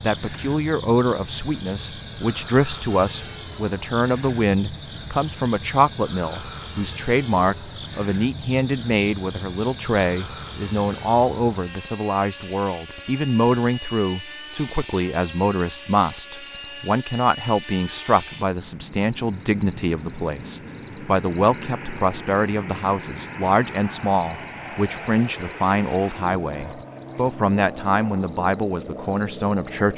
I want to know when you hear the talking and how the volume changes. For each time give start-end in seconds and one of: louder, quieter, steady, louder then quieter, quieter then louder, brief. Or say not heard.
0.0-29.9 steady.